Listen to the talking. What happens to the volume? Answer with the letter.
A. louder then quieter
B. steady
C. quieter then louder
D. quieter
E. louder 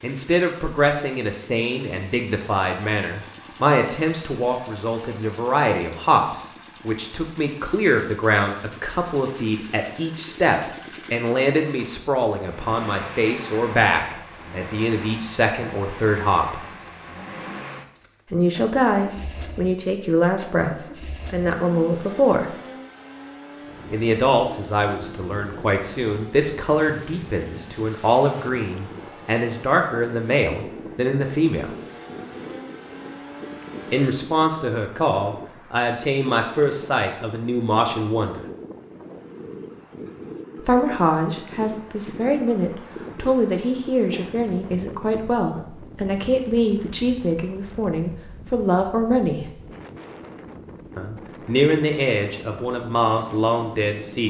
B.